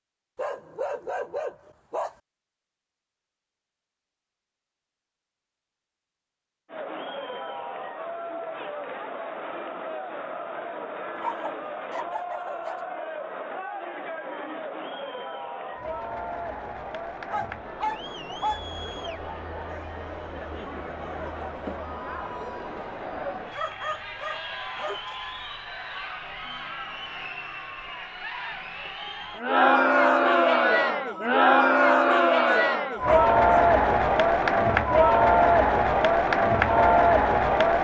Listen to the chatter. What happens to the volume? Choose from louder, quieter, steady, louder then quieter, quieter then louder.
louder.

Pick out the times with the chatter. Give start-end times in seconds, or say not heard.
6.7-37.7.